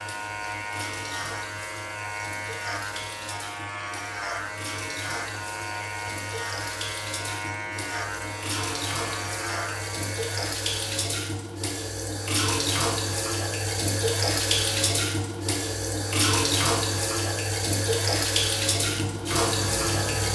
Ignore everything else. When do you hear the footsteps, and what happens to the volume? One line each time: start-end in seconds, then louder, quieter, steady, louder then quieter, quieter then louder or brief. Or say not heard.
not heard.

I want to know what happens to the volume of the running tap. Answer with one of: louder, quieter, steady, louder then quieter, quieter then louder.
louder.